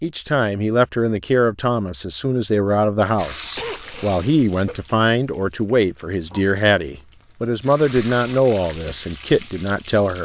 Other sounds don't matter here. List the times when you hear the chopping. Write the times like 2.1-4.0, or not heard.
not heard.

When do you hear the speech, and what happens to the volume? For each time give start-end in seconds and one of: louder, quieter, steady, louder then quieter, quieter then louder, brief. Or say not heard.
0.0-10.2 steady.